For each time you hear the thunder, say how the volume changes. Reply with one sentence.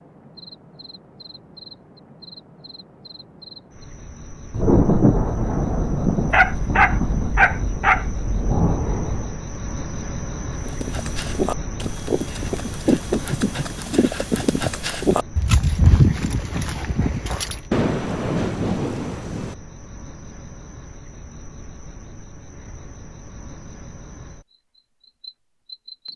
You can hear the thunder from 4.5 to 9.3 s, getting quieter then louder; and briefly from 17.7 to 19.6 s.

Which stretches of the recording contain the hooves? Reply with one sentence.
The hooves can be heard from 10.6 to 17.6 s.